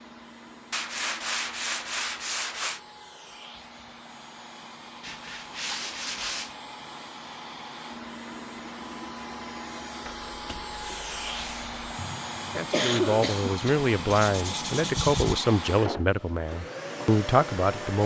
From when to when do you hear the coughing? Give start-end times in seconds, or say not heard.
11.9-13.6.